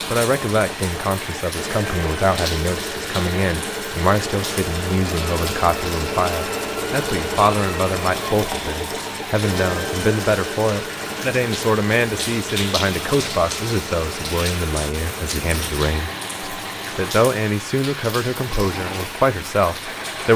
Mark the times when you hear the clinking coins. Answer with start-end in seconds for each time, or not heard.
not heard.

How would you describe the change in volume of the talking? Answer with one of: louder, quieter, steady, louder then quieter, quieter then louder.
steady.